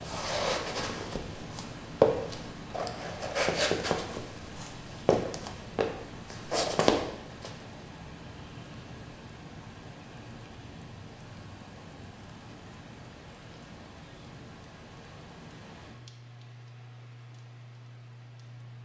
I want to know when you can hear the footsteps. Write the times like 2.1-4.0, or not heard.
0.0-7.5.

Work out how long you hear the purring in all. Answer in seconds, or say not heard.
not heard.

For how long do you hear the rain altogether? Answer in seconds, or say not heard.
19 s.